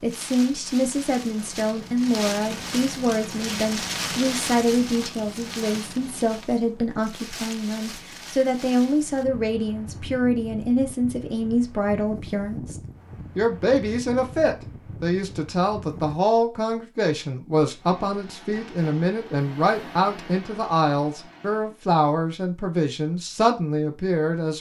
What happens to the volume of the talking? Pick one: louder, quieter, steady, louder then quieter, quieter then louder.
steady.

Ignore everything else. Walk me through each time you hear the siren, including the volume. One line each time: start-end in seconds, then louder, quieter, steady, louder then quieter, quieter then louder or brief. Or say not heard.
not heard.